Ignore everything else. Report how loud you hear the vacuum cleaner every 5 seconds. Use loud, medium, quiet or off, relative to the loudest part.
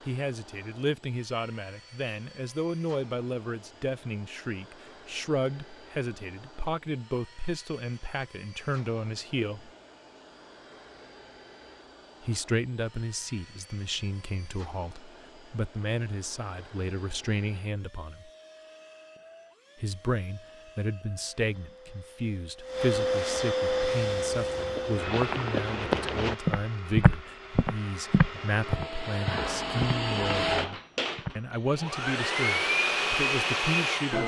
quiet, quiet, quiet, quiet, loud, medium, loud.